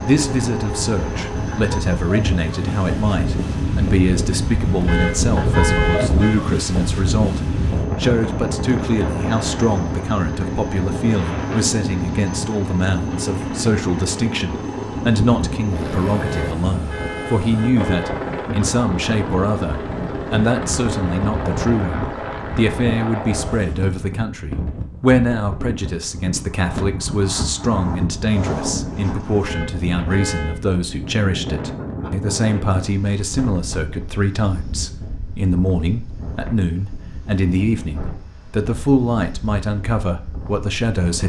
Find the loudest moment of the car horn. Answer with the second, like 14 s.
6 s.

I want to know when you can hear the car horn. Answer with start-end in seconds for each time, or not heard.
4.8-6.3, 16.2-18.1, 29.4-30.6.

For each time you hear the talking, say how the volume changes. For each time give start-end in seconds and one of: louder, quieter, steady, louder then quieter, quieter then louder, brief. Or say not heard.
0.1-41.2 steady.